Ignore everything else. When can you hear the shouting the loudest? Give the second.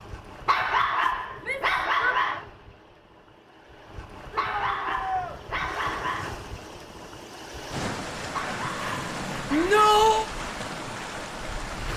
10 s.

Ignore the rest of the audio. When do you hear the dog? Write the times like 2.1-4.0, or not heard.
0.5-2.5, 4.3-6.3, 8.3-9.8.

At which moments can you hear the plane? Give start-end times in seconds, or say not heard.
not heard.